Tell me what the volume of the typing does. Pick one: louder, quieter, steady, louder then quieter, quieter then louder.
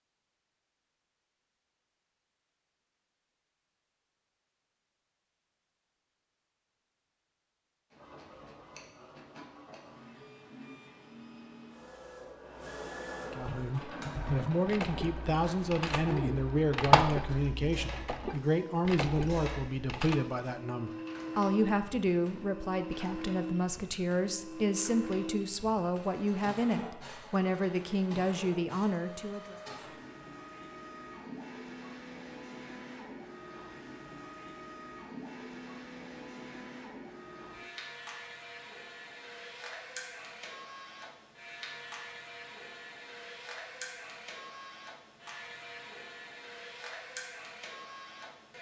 louder then quieter.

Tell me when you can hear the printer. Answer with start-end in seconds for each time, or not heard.
7.9-48.5.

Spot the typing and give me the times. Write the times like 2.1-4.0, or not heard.
13.4-20.2.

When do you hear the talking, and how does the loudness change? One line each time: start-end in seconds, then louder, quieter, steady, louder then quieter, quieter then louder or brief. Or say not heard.
13.3-29.6 steady.